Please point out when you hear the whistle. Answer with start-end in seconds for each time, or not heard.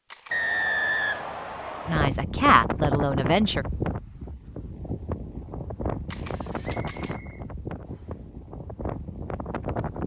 0.3-2.0, 6.6-8.2.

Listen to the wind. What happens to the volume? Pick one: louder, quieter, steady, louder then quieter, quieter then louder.
quieter.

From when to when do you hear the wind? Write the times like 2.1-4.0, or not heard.
1.9-10.0.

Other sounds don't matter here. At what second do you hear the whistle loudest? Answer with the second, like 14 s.
1 s.